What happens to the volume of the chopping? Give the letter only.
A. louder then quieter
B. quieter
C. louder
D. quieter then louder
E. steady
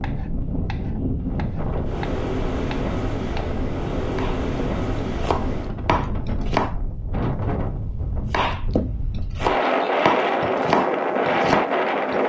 C.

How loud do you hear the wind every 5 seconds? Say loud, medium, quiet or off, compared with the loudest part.
medium, medium, loud.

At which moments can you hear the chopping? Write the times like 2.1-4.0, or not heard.
0.0-6.8, 8.3-12.2.